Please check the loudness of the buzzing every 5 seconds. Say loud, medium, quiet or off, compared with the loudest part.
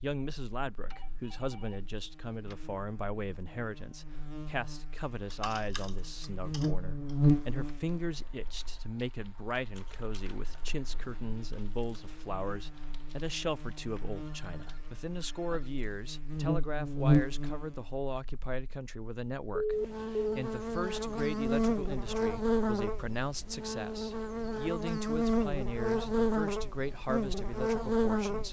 quiet, loud, quiet, loud, loud, loud.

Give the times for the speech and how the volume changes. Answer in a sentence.
You can hear the speech from 0.0 to 28.4 s, at a steady volume.